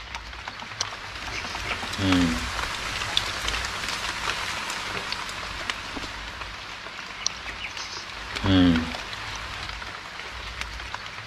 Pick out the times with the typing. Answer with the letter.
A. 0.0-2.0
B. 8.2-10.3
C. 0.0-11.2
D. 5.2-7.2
A.